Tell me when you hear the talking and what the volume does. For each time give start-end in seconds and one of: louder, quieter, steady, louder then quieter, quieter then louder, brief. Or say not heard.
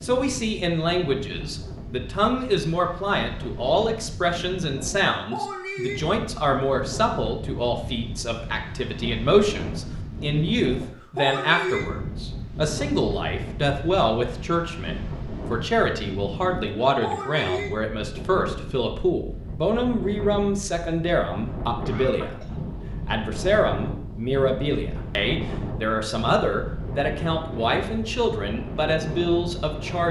0.0-30.0 steady.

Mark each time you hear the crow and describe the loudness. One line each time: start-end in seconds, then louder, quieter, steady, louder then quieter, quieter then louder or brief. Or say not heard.
not heard.